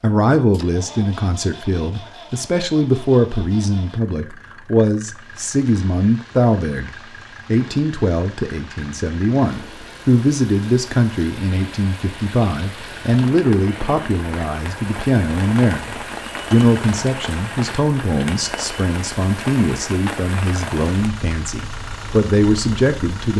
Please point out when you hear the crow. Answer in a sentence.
You can't hear the crow here.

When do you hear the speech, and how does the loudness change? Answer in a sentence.
You can hear the speech from 0.0 to 23.3 s, at a steady volume.